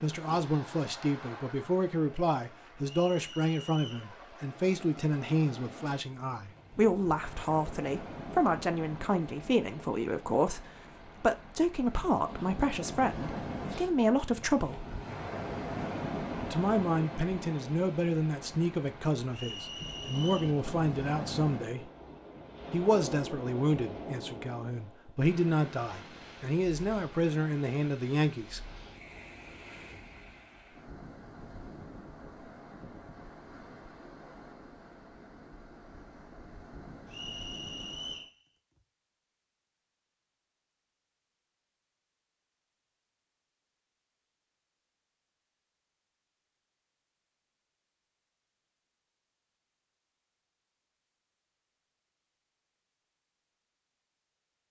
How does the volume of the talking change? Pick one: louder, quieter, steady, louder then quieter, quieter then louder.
steady.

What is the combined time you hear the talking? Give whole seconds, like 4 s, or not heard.
26 s.